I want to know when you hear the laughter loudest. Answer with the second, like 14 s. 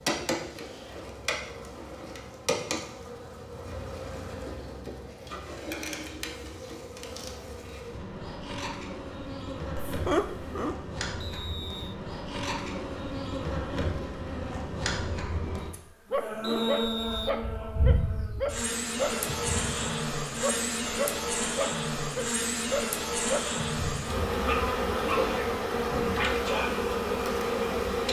10 s.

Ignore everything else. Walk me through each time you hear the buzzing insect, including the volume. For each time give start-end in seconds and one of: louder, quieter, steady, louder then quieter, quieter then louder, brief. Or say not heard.
0.0-28.0 louder.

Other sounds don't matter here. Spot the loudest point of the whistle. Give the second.
17 s.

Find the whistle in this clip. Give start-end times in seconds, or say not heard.
11.2-11.9, 16.4-17.4.